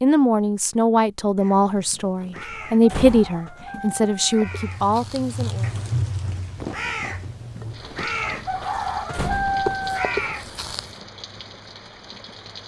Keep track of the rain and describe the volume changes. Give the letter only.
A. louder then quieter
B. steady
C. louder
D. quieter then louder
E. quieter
E.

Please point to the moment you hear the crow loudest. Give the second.
10 s.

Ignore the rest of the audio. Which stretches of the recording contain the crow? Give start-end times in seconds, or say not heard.
1.4-11.0.